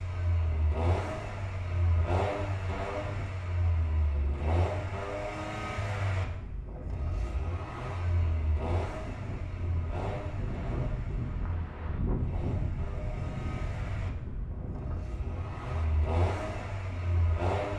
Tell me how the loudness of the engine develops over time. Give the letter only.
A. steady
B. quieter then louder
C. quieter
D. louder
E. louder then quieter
B.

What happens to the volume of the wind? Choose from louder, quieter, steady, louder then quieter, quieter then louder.
louder then quieter.